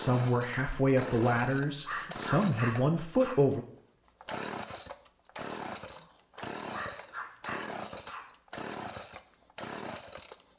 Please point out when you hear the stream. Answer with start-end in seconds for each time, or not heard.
not heard.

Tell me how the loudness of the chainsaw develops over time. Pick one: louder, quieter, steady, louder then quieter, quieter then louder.
steady.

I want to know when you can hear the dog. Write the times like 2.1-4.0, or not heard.
1.8-3.4, 6.7-8.2.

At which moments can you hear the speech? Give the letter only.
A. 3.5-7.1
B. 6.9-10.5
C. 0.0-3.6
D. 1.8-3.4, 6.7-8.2
C.